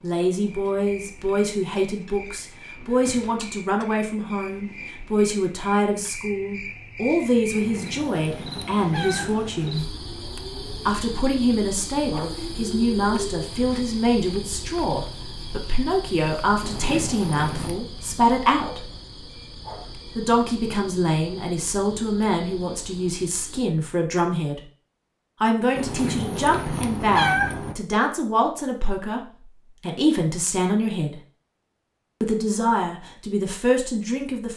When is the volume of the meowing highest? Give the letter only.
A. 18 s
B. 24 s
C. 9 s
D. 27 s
D.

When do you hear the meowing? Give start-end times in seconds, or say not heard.
7.5-9.6, 16.6-17.8, 25.8-27.8.